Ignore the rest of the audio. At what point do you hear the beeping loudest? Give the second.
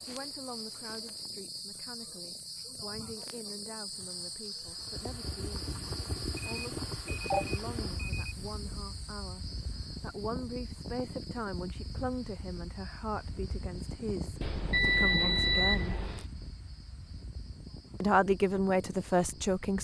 15 s.